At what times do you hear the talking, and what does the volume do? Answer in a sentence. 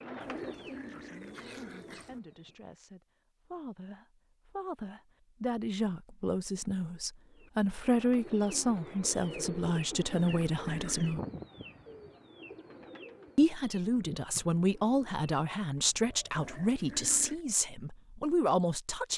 The talking can be heard from 0.0 to 11.2 s, getting louder; and from 13.3 to 19.1 s, at a steady volume.